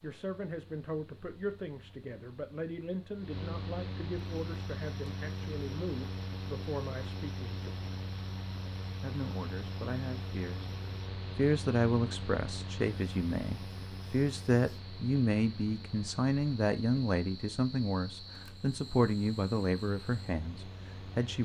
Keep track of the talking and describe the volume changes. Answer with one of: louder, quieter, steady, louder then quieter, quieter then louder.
louder.